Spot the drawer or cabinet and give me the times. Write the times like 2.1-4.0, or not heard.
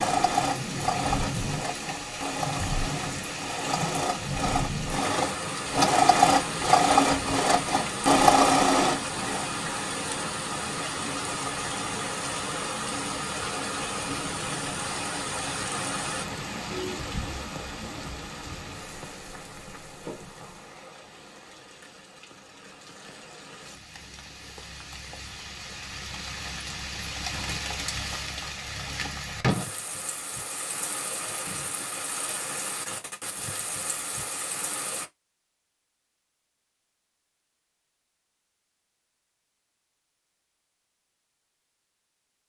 not heard.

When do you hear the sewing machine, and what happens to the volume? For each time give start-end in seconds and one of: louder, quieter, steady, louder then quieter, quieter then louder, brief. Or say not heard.
0.0-9.5 louder.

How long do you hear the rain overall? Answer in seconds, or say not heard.
35 s.